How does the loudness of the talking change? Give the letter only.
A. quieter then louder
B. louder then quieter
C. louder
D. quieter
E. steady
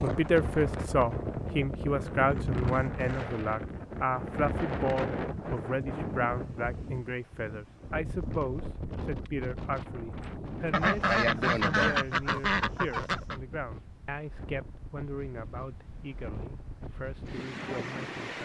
D.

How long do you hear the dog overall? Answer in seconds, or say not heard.
not heard.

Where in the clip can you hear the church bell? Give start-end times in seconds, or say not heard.
not heard.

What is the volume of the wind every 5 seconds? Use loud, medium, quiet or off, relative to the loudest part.
loud, loud, medium, medium.